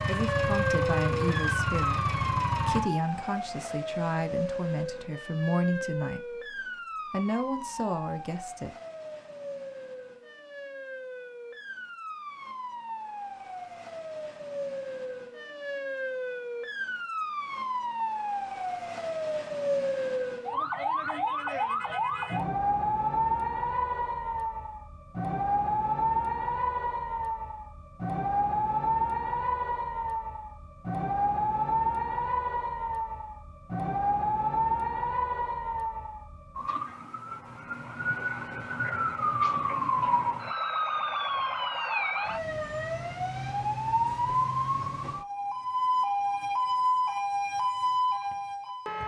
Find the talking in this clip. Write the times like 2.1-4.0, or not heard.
0.1-8.7.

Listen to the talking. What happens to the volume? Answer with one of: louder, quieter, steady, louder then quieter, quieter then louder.
steady.